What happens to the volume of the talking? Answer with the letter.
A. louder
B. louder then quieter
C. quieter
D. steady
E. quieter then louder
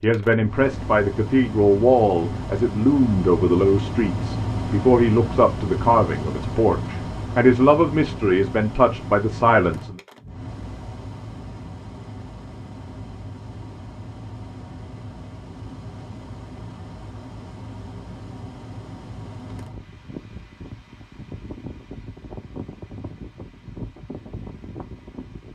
D.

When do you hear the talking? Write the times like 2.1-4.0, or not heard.
0.0-10.0.